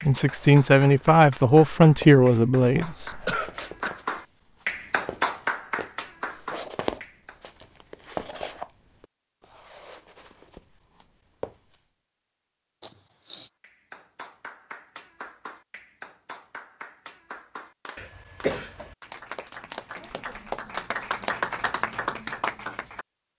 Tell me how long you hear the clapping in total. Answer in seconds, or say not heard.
17 s.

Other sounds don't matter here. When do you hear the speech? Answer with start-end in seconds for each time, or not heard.
0.0-3.4.